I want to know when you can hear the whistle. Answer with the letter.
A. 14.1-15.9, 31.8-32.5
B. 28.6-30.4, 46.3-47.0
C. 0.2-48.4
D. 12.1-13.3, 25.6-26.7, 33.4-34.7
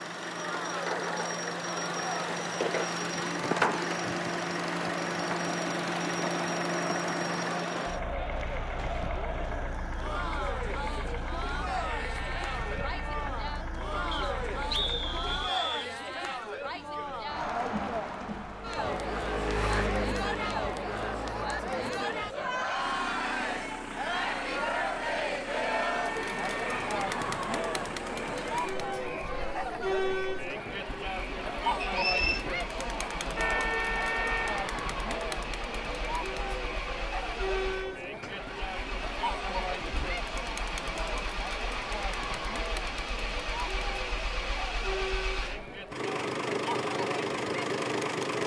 A.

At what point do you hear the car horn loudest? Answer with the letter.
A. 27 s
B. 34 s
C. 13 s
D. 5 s
B.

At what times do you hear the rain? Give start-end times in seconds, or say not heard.
not heard.